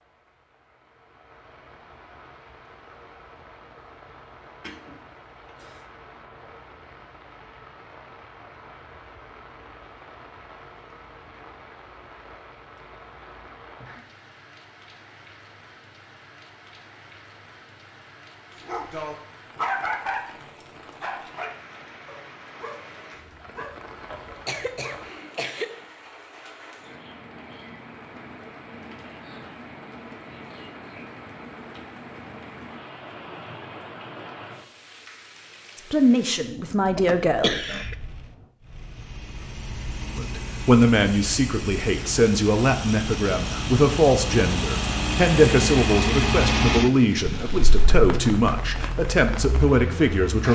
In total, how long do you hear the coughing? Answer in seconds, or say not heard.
4 s.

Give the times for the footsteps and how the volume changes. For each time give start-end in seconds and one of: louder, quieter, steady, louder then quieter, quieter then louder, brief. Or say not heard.
not heard.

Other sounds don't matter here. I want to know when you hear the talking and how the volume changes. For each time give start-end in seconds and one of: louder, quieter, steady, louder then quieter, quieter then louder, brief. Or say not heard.
35.8-37.6 brief
40.1-50.5 steady.